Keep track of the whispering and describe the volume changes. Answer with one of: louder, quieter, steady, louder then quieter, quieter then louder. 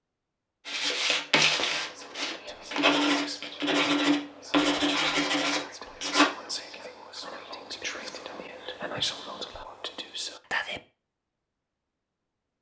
louder.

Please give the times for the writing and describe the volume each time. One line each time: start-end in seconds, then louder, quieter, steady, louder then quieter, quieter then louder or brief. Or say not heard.
0.7-6.2 steady.